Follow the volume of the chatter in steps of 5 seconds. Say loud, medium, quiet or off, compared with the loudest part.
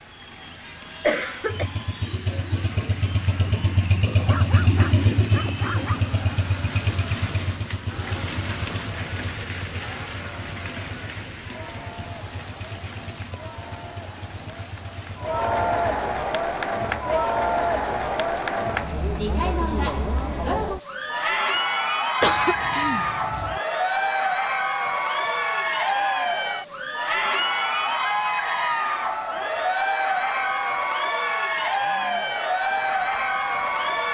quiet, quiet, quiet, loud, loud, loud, loud.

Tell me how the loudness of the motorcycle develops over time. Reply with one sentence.
The volume of the motorcycle goes down.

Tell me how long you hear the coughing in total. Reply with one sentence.
The coughing can be heard for 2 seconds in total.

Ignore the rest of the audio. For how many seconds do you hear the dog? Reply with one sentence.
You can hear the dog for 2 seconds altogether.